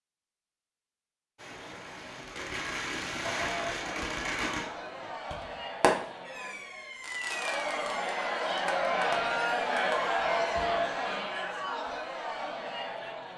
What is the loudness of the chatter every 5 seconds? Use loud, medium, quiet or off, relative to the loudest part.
medium, loud, loud.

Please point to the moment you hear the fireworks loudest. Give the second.
6 s.